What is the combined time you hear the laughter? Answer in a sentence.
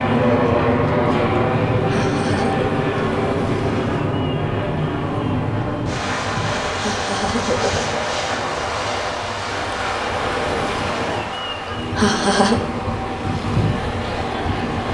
You can hear the laughter for 3 seconds altogether.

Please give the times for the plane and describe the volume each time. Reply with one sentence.
You can hear the plane from 0.0 to 14.8 s, getting quieter.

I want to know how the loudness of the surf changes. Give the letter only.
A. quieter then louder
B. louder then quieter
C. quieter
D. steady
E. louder
E.